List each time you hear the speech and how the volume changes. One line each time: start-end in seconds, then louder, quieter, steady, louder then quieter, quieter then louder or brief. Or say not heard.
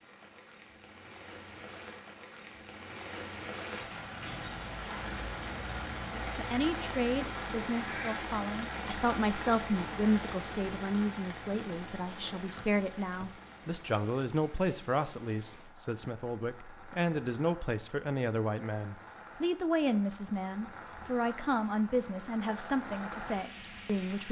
6.1-24.2 steady.